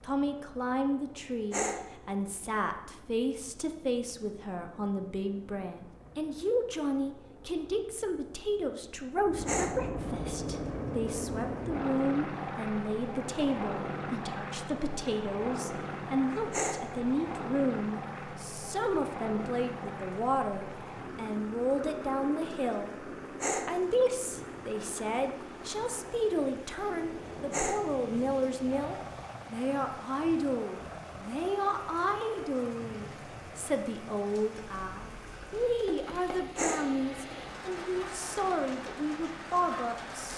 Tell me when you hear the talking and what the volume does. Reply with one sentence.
You can hear the talking from 0.0 to 40.3 s, at a steady volume.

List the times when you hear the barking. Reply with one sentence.
You can hear the barking from 1.5 to 1.9 s, from 9.4 to 9.9 s, from 16.5 to 16.9 s, from 23.4 to 23.8 s, from 27.5 to 27.9 s and from 36.5 to 37.0 s.